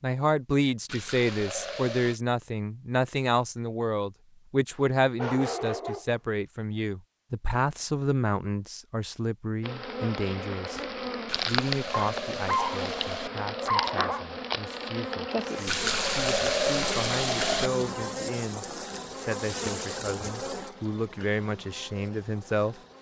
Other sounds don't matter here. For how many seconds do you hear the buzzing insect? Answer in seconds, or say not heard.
13 s.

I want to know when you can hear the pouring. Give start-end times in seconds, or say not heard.
0.8-2.2, 11.2-13.3, 15.7-17.7.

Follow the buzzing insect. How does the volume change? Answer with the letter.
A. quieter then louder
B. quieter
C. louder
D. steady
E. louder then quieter
B.